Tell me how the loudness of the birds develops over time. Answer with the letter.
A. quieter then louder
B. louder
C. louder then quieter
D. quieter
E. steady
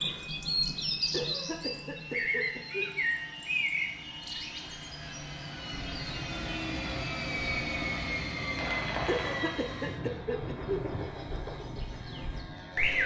A.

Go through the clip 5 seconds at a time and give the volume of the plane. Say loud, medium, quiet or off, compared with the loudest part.
medium, loud, medium.